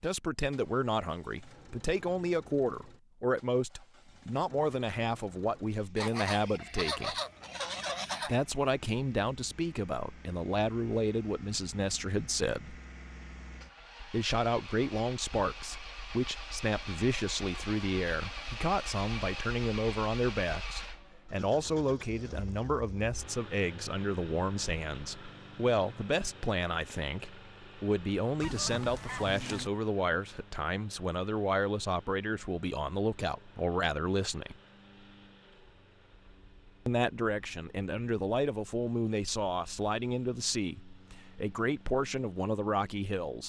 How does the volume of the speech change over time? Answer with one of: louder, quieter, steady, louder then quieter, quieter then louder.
steady.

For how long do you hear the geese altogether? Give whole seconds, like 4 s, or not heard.
4 s.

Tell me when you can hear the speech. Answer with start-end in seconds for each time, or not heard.
0.0-7.2, 8.2-12.8, 14.1-34.5, 36.9-43.4.